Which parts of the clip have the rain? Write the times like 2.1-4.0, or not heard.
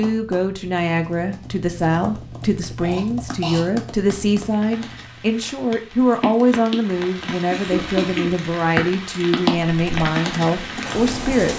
4.5-11.5.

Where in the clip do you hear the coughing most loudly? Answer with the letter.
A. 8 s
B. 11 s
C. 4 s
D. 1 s
A.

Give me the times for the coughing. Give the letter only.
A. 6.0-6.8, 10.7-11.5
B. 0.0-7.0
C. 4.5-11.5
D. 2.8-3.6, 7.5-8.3
D.